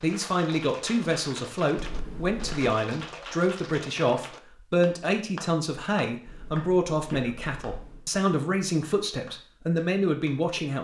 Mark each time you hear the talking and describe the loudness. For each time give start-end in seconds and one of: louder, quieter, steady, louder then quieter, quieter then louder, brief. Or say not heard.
0.0-10.7 steady.